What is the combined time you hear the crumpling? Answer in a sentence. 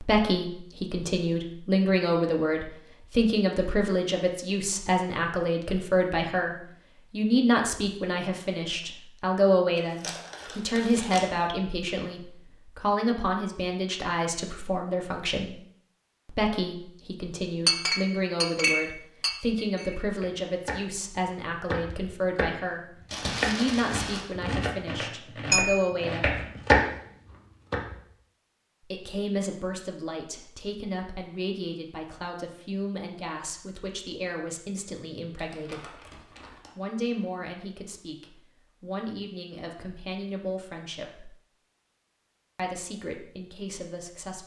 The crumpling can be heard for 4 seconds in total.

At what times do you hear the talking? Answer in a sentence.
You can hear the talking from 0.0 to 15.6 s, from 16.2 to 26.4 s, from 28.9 to 35.9 s, from 36.8 to 41.3 s and from 42.5 to 44.4 s.